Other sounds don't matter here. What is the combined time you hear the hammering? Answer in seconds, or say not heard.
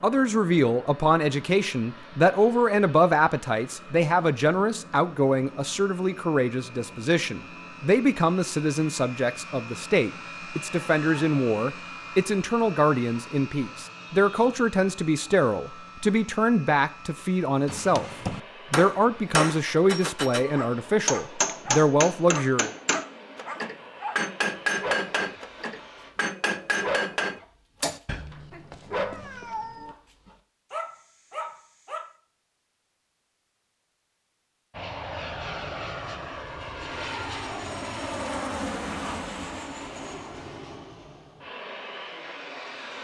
10 s.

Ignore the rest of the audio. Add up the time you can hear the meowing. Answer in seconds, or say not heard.
2 s.